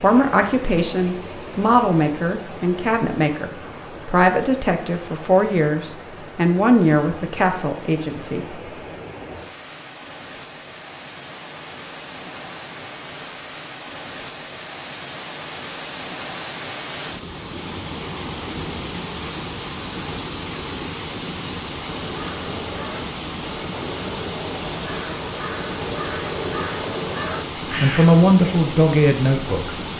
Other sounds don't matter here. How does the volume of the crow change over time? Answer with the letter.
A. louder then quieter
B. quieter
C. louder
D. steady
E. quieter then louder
C.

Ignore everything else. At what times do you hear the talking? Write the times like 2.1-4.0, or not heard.
0.0-8.6, 27.7-29.9.